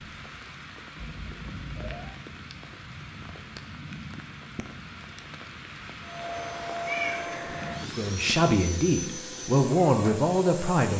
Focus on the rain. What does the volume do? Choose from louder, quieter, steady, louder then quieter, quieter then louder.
steady.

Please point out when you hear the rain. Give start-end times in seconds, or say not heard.
0.0-8.4.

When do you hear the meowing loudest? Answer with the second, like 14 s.
7 s.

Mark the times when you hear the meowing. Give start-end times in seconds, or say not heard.
0.9-2.1, 6.8-7.6.